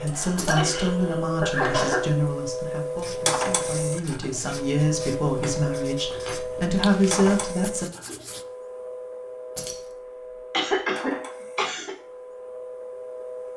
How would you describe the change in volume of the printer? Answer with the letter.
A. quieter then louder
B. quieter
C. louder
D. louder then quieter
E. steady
B.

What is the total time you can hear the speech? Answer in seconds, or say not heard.
8 s.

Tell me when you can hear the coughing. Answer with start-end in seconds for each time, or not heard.
0.1-2.1, 10.5-11.9.